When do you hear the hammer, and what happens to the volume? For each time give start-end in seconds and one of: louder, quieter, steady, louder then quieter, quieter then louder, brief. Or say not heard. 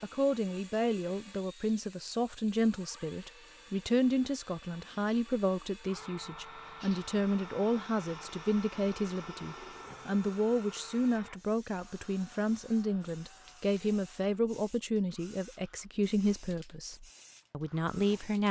not heard.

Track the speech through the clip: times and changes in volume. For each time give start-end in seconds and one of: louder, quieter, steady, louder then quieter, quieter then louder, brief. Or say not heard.
0.0-18.4 steady.